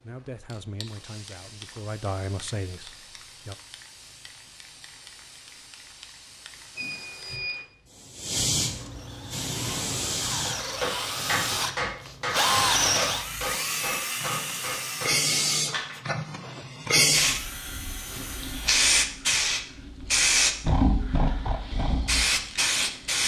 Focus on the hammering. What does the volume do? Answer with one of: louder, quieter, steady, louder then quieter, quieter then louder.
quieter.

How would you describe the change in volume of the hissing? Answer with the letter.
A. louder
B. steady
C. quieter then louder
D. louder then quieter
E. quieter
A.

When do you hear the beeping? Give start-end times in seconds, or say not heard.
6.8-7.7.